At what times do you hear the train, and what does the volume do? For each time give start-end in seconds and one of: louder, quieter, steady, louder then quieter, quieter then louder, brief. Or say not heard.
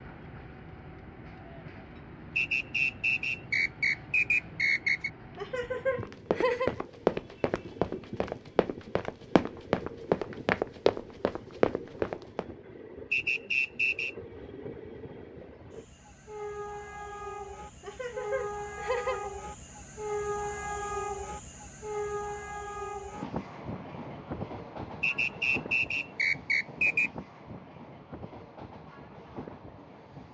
0.0-30.2 louder then quieter.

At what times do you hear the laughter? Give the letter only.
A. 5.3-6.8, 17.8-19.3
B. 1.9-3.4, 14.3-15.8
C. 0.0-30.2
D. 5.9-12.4
A.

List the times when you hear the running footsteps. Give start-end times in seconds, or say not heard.
5.9-12.4.